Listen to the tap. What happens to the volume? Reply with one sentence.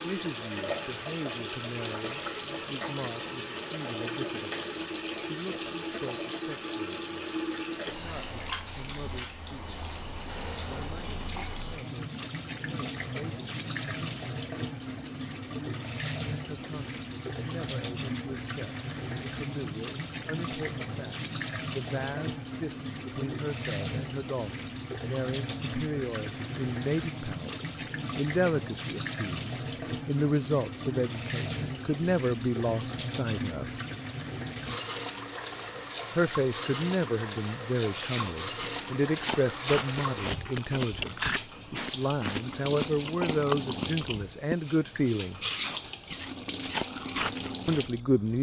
The loudness of the tap stays about the same.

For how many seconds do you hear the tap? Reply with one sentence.
You can hear the tap for 48 seconds altogether.